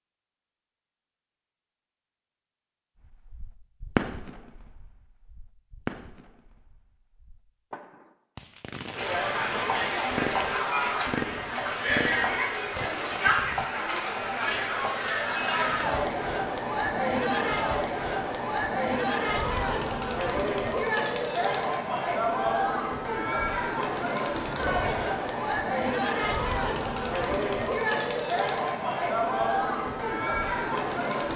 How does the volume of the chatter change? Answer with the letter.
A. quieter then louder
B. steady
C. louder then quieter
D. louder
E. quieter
B.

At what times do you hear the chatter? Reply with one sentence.
You can hear the chatter from 8.9 to 31.3 s.